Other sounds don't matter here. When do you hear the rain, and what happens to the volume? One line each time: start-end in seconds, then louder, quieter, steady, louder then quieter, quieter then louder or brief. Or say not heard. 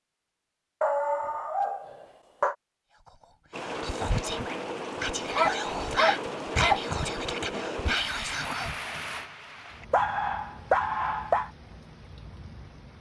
3.5-12.9 quieter.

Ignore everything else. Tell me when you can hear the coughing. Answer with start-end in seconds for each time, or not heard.
not heard.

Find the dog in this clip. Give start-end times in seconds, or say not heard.
0.8-2.5, 5.3-6.8, 9.9-11.5.